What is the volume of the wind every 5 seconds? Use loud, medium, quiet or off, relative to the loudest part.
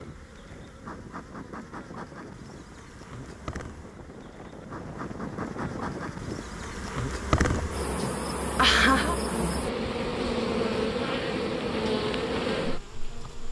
medium, loud, off.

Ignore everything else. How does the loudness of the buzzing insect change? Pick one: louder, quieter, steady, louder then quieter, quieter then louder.
louder.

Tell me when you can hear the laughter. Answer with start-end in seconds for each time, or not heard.
7.5-9.2.